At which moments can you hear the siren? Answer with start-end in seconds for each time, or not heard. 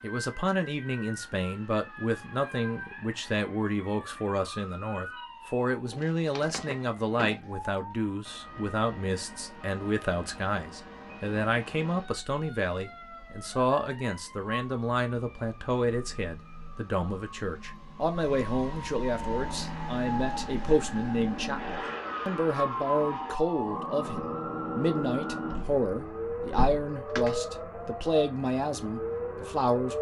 0.0-29.9.